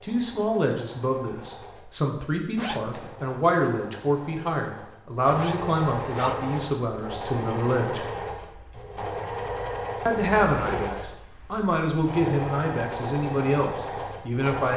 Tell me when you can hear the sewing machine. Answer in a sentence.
You can hear the sewing machine from 0.0 to 14.7 s.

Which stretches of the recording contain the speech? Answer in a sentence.
You can hear the speech from 0.0 to 8.1 s and from 10.1 to 14.7 s.